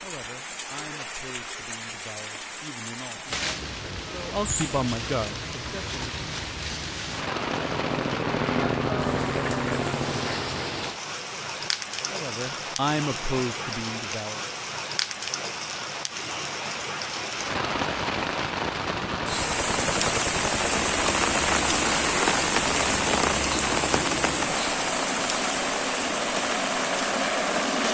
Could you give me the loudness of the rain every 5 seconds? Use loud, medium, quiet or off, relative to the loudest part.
medium, medium, medium, medium, loud, medium.